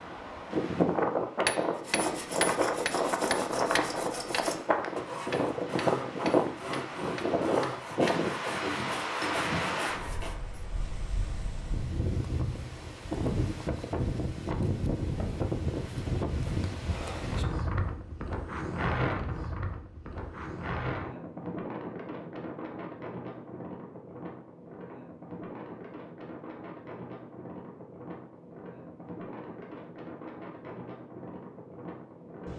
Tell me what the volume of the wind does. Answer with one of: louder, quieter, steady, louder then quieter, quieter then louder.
quieter.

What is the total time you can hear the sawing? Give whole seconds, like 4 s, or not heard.
9 s.